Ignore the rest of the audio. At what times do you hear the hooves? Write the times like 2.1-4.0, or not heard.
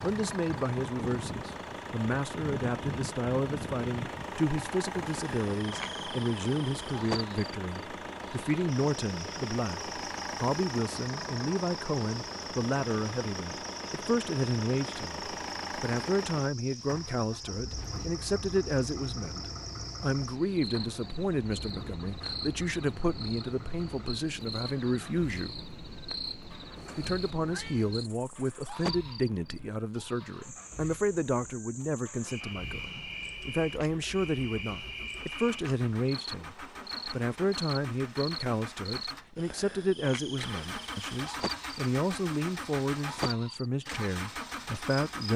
not heard.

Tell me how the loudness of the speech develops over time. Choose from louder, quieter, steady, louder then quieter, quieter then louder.
steady.